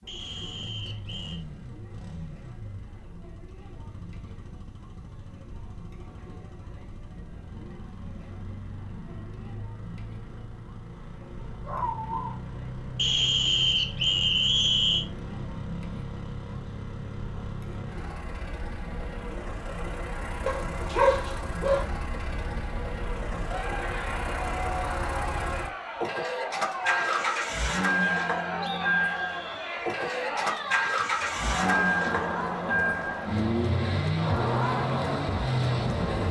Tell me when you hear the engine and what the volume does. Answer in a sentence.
You can hear the engine from 0.0 to 36.2 s, getting louder.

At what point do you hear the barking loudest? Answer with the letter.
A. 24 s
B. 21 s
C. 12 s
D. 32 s
B.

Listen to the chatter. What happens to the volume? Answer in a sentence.
The volume of the chatter goes up.